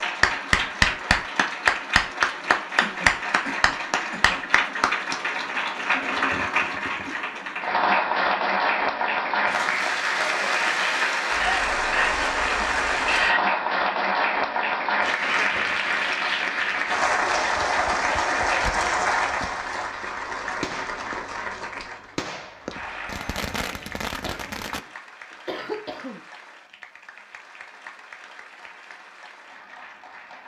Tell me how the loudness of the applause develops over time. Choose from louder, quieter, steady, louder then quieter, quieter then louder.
quieter.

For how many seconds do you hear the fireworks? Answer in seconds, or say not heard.
5 s.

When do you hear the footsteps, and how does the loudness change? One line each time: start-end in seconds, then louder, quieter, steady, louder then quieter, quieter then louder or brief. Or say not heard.
not heard.